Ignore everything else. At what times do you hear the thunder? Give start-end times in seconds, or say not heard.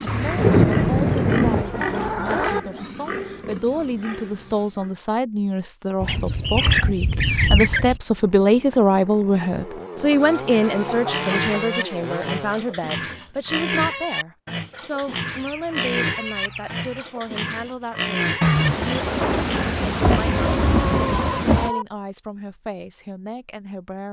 0.1-1.6, 18.4-21.7.